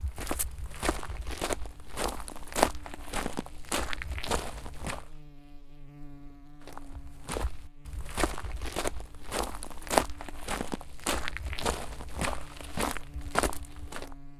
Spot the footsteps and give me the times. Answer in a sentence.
The footsteps can be heard from 0.0 to 5.1 s and from 6.7 to 14.2 s.